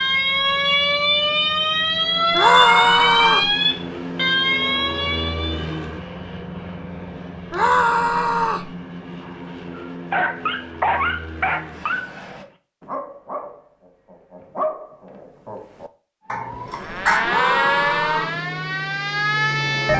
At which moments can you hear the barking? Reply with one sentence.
You can hear the barking from 9.8 to 17.4 s.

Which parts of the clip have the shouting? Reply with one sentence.
You can hear the shouting from 2.3 to 3.5 s, from 7.5 to 8.7 s and from 17.2 to 18.3 s.